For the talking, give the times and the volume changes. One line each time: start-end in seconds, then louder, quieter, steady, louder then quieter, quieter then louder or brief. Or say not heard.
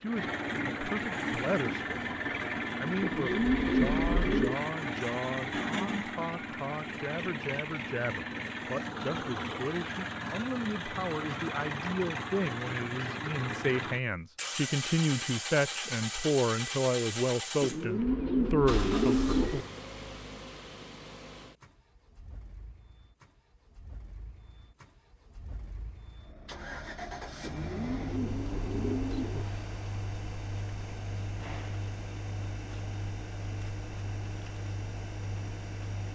0.0-2.0 brief
2.8-19.5 louder.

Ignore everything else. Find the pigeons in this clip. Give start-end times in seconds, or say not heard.
3.0-4.6, 17.6-19.6, 27.4-29.4.